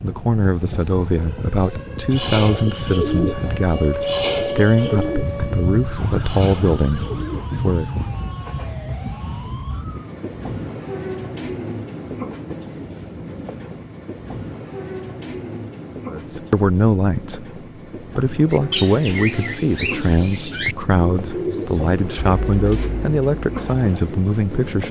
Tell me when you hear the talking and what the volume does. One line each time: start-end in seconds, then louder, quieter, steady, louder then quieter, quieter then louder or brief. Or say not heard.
0.0-7.9 steady
16.1-24.8 steady.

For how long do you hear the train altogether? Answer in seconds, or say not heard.
25 s.